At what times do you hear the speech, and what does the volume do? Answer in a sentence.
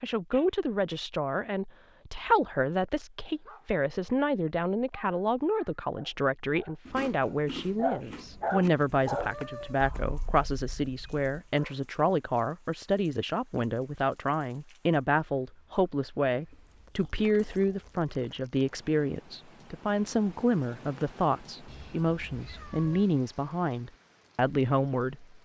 The speech can be heard from 0.0 to 25.4 s, at a steady volume.